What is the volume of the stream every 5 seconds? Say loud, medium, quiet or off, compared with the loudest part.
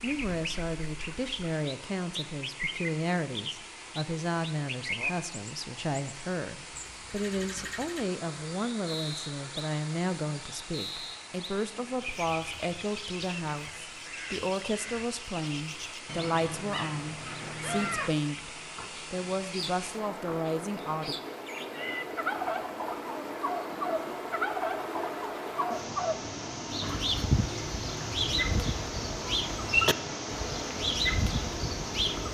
medium, medium, medium, medium, loud, loud, loud.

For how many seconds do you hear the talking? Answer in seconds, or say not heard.
21 s.